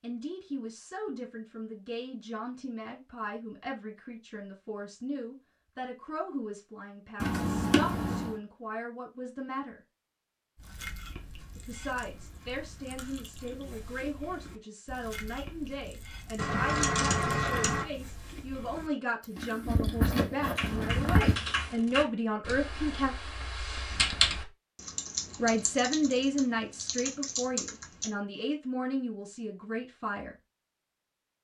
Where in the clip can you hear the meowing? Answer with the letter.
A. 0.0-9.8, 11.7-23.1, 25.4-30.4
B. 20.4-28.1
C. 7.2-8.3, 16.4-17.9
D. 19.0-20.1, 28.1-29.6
C.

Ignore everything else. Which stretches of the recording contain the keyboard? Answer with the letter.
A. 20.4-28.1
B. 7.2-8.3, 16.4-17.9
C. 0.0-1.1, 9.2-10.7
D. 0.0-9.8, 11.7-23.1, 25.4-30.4
A.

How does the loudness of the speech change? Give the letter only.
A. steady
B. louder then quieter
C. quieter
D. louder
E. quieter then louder
D.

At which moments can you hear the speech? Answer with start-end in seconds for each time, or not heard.
0.0-9.8, 11.7-23.1, 25.4-30.4.